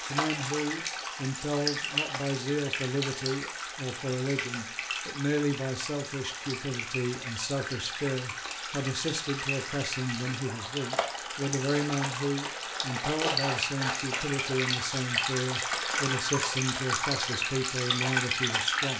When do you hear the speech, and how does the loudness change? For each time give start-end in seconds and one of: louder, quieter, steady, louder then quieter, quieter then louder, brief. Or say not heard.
0.1-18.9 steady.